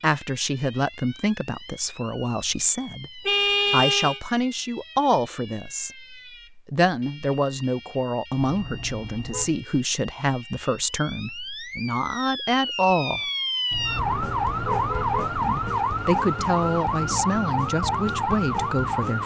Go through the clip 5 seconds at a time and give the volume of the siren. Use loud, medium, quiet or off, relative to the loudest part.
quiet, quiet, loud, loud.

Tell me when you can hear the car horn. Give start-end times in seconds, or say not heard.
3.2-4.2, 8.4-9.6, 13.7-15.4.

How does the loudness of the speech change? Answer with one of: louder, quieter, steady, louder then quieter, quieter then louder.
steady.